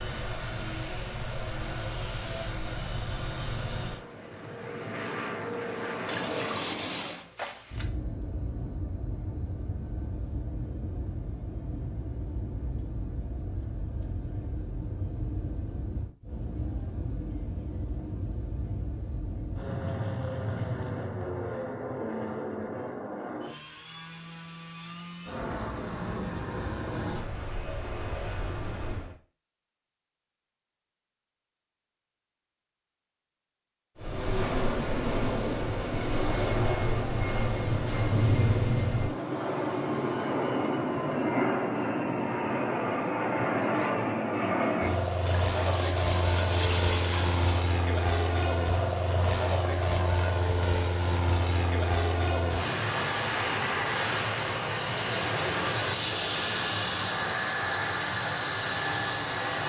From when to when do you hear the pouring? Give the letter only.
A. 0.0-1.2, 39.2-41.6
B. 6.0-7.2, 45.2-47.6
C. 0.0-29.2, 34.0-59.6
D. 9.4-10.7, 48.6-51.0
B.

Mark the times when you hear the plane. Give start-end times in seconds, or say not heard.
0.0-29.2, 34.0-59.6.